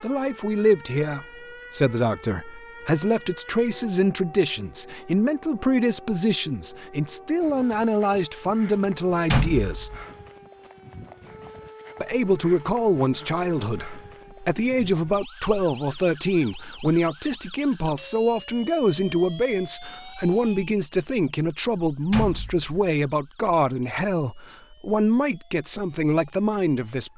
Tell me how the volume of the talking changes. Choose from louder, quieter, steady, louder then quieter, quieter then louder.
steady.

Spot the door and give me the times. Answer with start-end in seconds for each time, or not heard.
9.3-10.1, 22.1-22.6.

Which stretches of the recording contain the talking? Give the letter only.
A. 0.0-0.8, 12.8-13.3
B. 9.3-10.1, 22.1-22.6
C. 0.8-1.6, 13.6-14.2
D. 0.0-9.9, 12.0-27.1
D.